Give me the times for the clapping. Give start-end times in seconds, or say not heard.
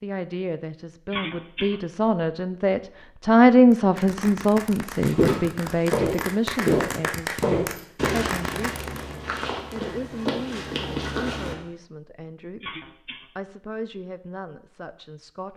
3.7-9.2.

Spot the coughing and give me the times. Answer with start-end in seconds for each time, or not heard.
1.1-1.8, 12.6-13.2.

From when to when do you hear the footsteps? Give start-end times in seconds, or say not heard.
5.0-11.6.